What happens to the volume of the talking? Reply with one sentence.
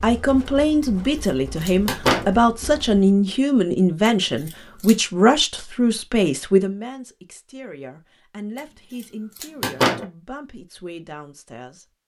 The volume of the talking goes down.